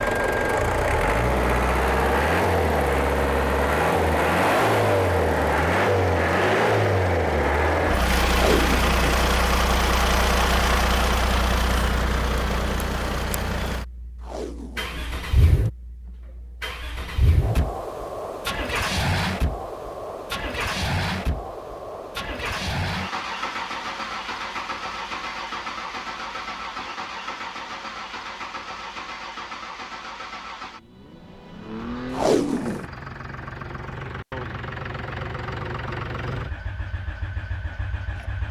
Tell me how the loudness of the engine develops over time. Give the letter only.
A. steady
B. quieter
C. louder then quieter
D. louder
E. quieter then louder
B.